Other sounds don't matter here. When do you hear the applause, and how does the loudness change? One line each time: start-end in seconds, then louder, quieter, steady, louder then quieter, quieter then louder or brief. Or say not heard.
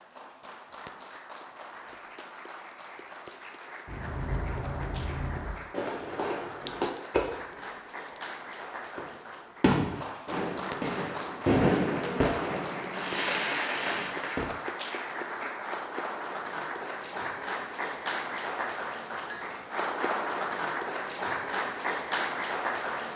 0.0-23.1 louder.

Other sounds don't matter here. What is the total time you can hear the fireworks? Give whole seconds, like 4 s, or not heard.
10 s.